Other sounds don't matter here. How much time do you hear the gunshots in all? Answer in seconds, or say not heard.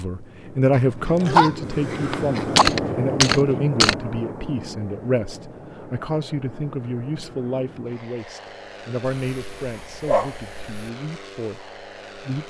2 s.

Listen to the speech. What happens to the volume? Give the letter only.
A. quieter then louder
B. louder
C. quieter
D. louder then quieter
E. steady
C.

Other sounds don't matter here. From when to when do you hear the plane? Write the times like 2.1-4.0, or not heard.
0.0-12.4.